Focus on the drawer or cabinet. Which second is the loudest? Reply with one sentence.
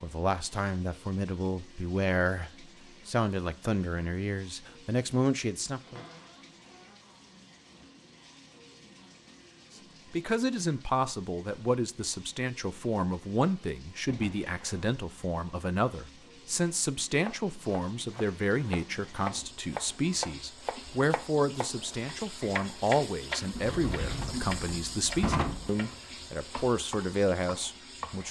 The loudest moment of the drawer or cabinet is at 25 seconds.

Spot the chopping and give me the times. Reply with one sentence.
The chopping can be heard from 17.1 to 28.2 s.